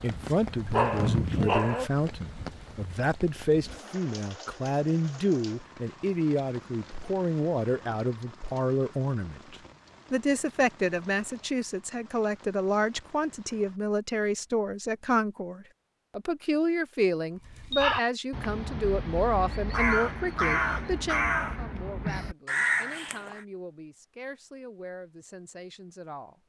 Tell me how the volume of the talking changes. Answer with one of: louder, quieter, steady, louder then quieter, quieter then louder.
quieter.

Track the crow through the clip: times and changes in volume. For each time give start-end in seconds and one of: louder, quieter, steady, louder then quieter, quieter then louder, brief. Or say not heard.
17.4-23.4 steady.